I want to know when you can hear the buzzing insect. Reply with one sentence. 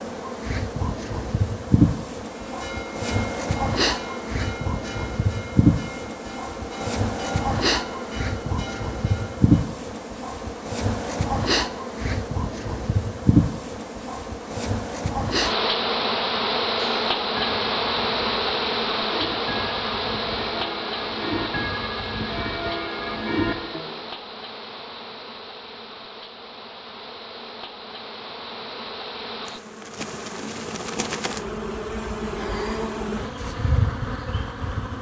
The buzzing insect can be heard from 0.0 to 34.9 s.